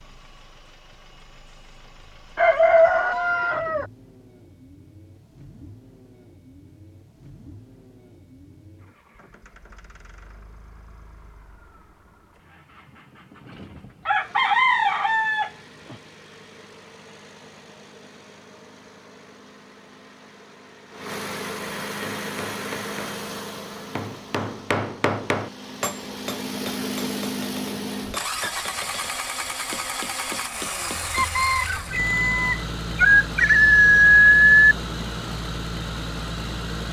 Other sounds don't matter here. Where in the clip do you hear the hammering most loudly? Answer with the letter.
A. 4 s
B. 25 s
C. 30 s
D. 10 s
B.